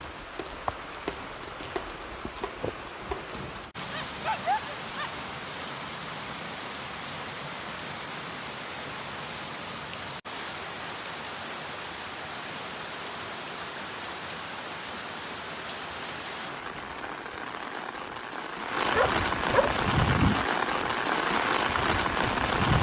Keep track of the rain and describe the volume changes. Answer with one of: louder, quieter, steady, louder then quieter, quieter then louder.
louder.